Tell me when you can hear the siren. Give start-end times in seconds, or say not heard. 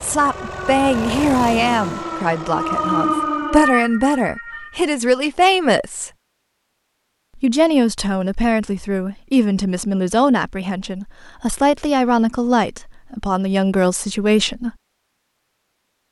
0.1-4.8.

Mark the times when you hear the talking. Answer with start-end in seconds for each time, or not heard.
0.0-6.1, 7.3-14.7.